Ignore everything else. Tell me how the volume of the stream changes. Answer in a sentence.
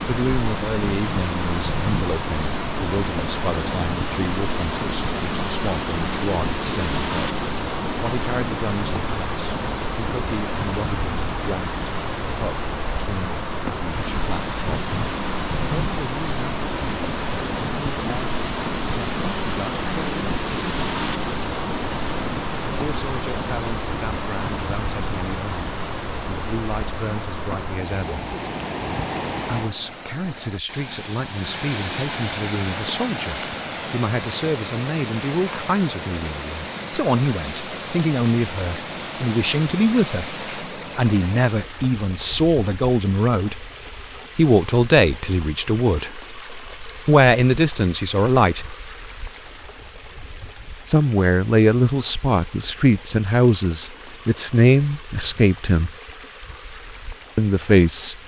The loudness of the stream goes down.